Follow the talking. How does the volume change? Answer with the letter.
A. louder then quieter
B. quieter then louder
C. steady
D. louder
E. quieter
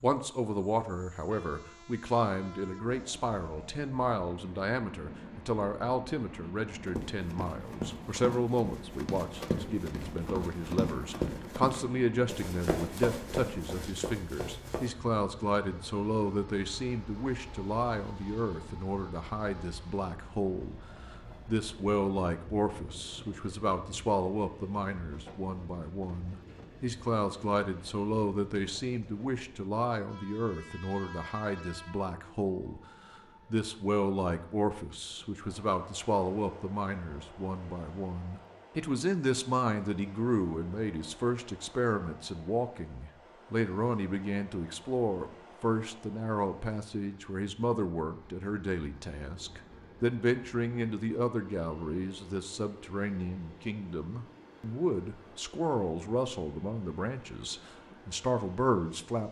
C.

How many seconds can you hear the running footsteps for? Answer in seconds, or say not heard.
8 s.